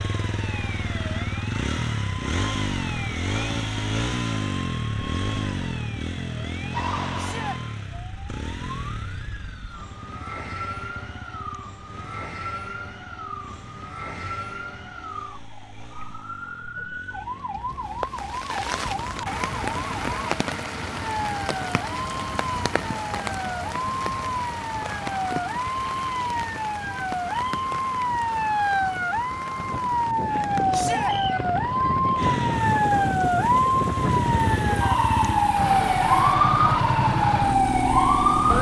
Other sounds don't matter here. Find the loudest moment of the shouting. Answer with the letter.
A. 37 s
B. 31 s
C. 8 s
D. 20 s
B.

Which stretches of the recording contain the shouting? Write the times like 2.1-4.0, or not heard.
7.2-7.6, 30.7-31.1.